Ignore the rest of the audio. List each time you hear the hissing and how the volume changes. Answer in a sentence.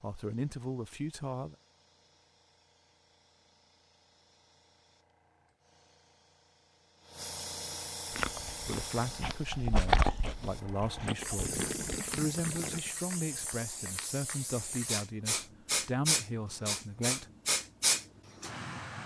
You can hear the hissing from 0.0 to 19.0 s, getting louder.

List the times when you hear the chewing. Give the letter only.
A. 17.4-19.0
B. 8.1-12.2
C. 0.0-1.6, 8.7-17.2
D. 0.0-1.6
B.